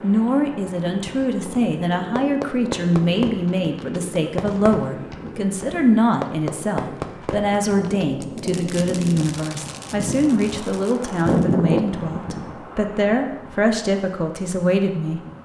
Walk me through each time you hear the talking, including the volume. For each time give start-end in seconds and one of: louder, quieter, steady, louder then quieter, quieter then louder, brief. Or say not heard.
0.0-15.4 steady.